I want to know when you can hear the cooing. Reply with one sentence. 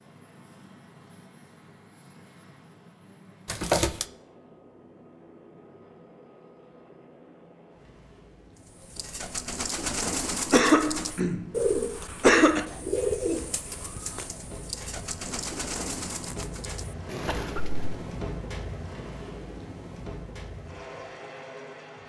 You can hear the cooing from 8.7 to 18.1 s.